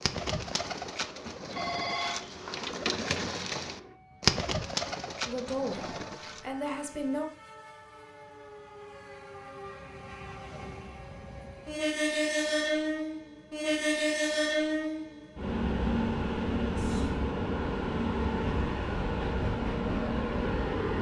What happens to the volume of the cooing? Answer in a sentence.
The loudness of the cooing goes up, then down.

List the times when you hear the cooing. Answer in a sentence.
The cooing can be heard from 0.0 to 6.5 s.